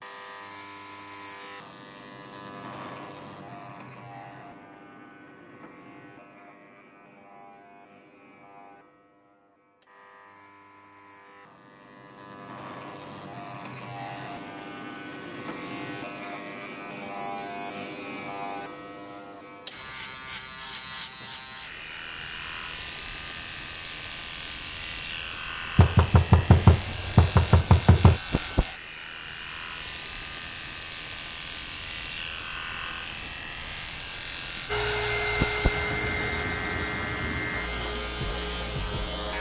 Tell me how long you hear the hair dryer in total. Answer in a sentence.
You can hear the hair dryer for 5 seconds altogether.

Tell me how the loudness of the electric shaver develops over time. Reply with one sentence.
The volume of the electric shaver goes up.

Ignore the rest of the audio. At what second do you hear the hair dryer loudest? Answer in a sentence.
The loudest moment of the hair dryer is at 35 seconds.